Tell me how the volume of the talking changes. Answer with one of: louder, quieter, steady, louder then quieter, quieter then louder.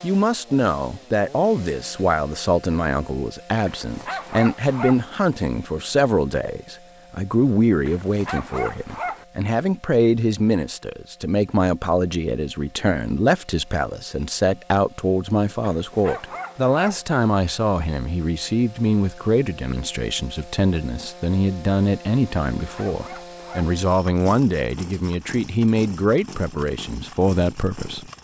steady.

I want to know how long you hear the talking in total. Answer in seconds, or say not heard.
28 s.